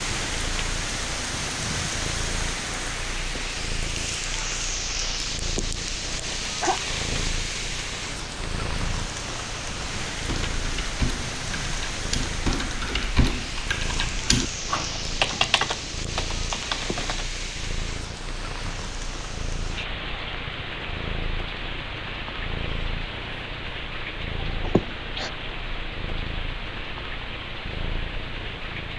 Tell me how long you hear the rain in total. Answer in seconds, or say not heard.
29 s.